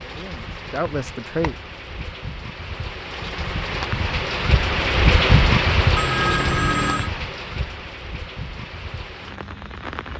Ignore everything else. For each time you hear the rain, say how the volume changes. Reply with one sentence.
You can hear the rain from 0.0 to 10.1 s, getting louder then quieter.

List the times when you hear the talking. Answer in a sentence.
The talking can be heard from 0.0 to 1.6 s.